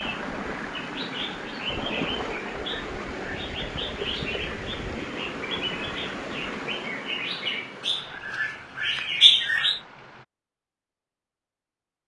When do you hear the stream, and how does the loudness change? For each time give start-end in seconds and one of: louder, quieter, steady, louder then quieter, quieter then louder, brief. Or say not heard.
0.0-10.2 quieter.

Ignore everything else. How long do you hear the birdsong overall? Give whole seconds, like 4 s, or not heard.
10 s.